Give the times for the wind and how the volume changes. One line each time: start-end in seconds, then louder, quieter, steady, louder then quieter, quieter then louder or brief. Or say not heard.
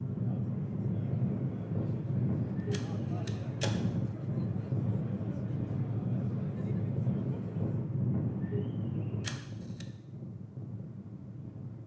0.0-11.8 quieter.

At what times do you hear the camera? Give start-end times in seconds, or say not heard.
2.7-3.9, 9.2-9.8.